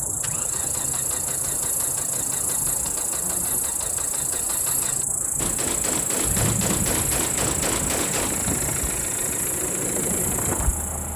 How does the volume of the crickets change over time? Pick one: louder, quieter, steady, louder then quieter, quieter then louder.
steady.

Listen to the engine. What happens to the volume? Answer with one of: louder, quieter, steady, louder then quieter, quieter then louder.
louder.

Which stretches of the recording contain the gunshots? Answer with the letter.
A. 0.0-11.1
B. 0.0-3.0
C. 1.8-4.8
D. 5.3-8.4
D.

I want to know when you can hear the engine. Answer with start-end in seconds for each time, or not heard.
0.0-11.1.